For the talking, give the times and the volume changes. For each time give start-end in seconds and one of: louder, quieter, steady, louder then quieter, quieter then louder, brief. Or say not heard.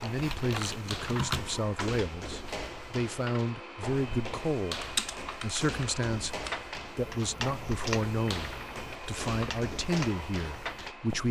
0.0-11.2 steady.